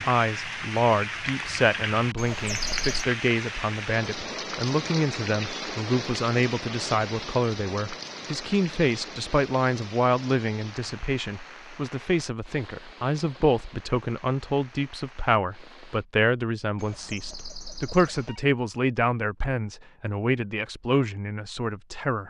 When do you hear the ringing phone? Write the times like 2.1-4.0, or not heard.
2.1-3.0, 16.8-18.4.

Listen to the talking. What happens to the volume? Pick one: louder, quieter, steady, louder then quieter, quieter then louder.
steady.